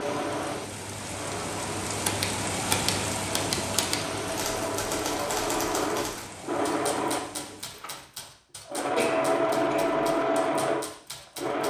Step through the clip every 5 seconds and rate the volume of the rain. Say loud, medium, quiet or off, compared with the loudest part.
loud, medium, off.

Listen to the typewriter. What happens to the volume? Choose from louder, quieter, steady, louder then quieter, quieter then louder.
quieter.